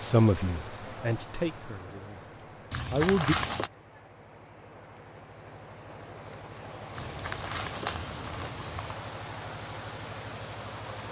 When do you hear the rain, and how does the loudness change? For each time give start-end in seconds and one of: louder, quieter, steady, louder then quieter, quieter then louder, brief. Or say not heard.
0.0-11.0 quieter then louder.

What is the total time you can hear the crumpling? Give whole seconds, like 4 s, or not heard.
3 s.